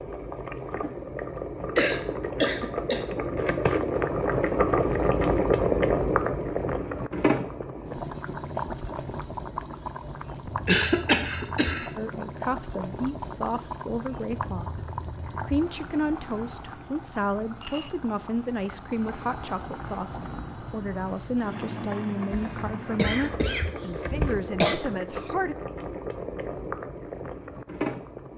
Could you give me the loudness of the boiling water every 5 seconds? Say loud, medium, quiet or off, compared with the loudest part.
loud, loud, medium, quiet, medium, medium.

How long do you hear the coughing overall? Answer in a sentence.
The coughing can be heard for 5 seconds in total.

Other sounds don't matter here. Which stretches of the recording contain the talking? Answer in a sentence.
The talking can be heard from 11.9 to 25.6 s.